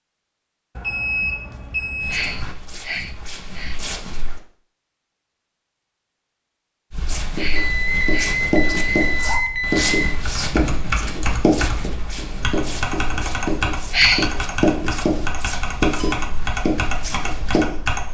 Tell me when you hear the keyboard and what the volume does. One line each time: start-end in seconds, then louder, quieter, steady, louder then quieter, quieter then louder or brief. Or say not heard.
10.1-18.0 steady.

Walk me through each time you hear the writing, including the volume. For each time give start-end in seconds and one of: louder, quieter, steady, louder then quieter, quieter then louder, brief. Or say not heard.
7.2-17.8 steady.